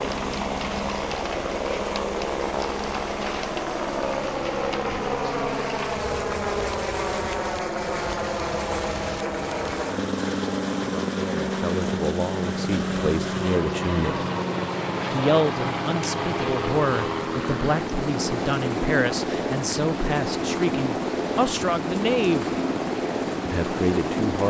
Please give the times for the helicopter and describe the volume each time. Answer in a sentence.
The helicopter can be heard from 0.0 to 24.4 s, at a steady volume.